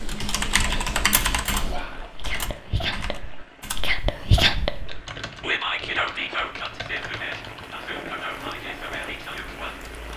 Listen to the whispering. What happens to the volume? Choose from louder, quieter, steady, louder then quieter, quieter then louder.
louder then quieter.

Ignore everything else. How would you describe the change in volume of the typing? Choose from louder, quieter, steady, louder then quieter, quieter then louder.
quieter.